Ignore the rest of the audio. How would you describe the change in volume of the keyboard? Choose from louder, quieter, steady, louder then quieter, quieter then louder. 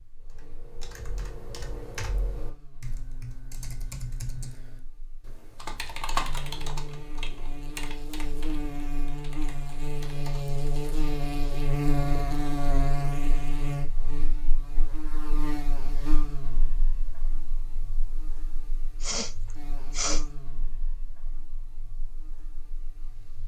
louder then quieter.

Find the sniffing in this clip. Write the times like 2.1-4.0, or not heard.
19.0-20.2.